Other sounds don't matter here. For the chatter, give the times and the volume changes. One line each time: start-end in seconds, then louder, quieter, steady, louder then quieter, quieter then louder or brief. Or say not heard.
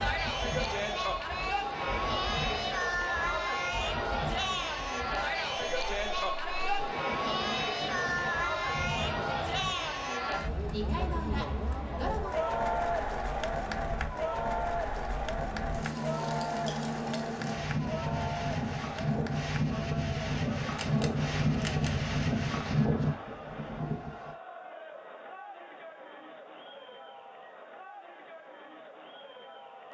0.0-29.8 quieter.